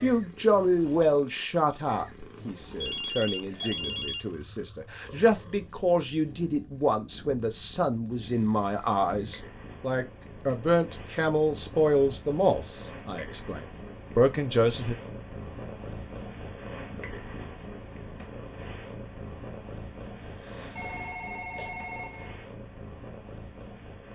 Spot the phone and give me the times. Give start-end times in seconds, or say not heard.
2.8-4.3, 8.2-9.4, 20.8-22.4.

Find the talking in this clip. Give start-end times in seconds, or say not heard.
0.0-14.9.